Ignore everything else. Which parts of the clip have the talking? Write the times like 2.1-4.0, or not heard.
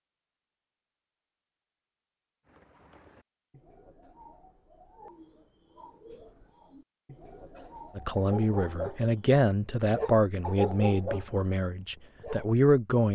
8.0-13.0.